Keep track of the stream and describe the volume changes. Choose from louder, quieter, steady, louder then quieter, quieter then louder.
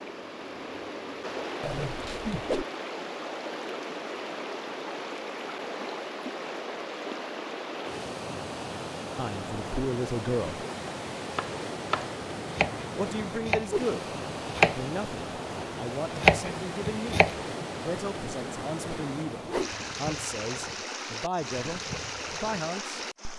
steady.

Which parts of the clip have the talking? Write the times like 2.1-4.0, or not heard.
9.2-10.7, 12.9-23.0.